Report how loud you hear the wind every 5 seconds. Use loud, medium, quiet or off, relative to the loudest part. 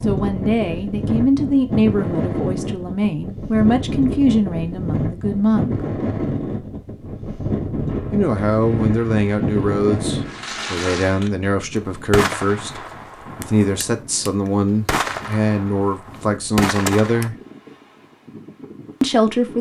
loud, loud, medium, quiet.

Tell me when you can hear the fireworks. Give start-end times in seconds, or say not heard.
7.0-17.3.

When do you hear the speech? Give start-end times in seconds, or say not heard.
0.0-5.8, 8.1-17.4, 19.0-19.5.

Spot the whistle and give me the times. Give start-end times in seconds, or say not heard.
not heard.